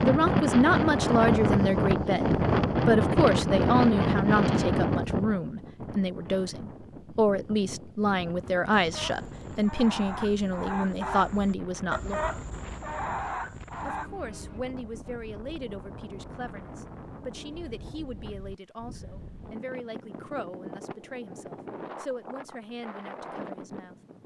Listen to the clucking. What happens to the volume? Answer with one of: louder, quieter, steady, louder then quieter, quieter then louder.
louder.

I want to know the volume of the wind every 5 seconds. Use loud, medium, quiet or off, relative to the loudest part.
loud, quiet, quiet, quiet, quiet.